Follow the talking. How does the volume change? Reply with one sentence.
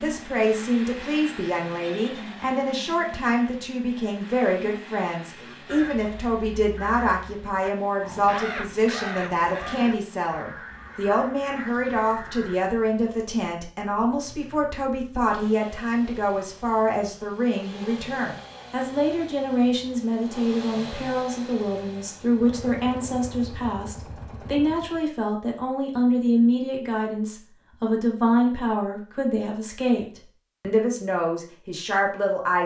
The loudness of the talking stays about the same.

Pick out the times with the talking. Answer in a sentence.
You can hear the talking from 0.0 to 32.6 s.